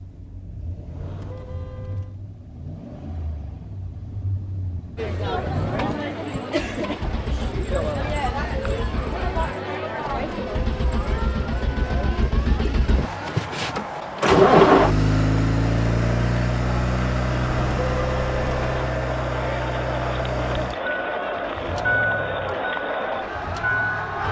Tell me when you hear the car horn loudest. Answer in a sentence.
The loudest moment of the car horn is at 18 seconds.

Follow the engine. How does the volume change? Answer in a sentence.
The volume of the engine goes up, then down.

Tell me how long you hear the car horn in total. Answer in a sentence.
The car horn can be heard for 4 seconds in total.